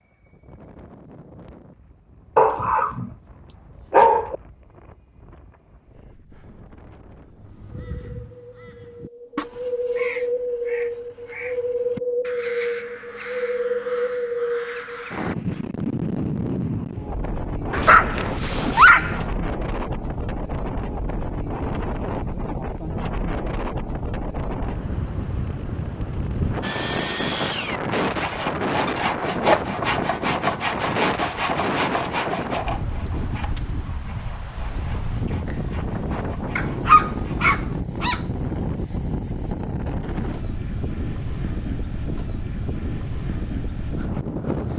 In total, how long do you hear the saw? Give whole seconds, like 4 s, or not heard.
11 s.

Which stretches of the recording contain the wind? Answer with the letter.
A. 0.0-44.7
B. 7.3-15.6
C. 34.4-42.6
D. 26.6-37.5
A.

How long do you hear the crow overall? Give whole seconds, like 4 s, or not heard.
8 s.